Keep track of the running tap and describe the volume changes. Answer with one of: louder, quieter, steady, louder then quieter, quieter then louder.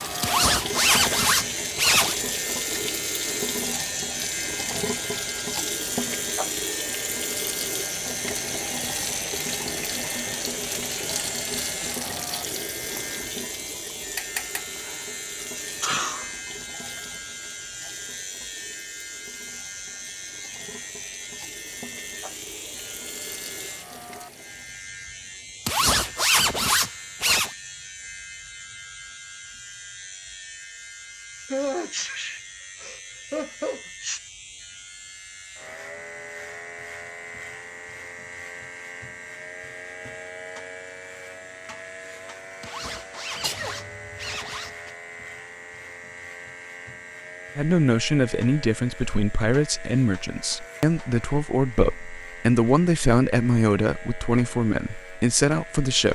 quieter.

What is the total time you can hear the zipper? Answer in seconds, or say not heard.
6 s.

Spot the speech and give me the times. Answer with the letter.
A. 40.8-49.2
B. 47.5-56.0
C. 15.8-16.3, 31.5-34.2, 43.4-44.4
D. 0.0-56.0
B.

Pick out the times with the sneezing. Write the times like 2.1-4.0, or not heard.
15.8-16.3, 31.5-34.2, 43.4-44.4.